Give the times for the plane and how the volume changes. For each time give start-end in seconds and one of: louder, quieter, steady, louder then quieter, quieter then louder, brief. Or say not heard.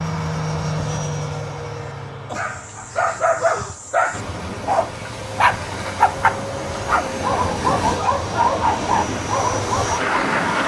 0.0-10.6 quieter then louder.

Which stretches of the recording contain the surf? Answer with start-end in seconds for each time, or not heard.
4.1-10.6.